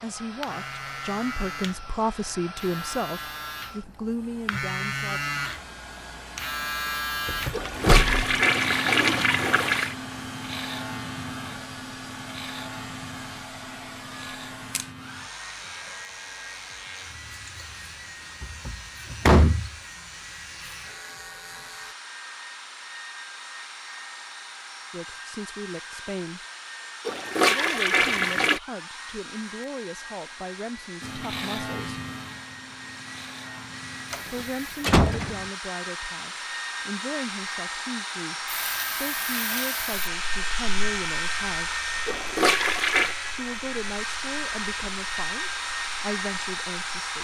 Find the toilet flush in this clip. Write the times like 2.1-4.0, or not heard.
7.5-9.9, 27.1-28.6, 42.0-43.1.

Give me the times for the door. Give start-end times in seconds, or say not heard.
7.2-8.2, 18.4-19.7, 34.1-35.4.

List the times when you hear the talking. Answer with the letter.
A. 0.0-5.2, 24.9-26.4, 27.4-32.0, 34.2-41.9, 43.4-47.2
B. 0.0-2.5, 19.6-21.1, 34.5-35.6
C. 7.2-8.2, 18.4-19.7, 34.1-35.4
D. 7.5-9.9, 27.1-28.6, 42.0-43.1
A.